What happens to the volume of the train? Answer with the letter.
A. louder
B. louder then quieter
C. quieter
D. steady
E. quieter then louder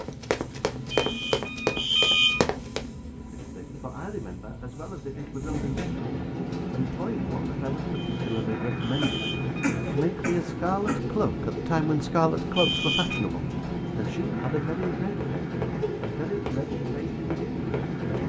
A.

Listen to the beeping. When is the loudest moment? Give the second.
2 s.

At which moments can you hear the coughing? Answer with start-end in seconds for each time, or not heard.
9.0-11.0.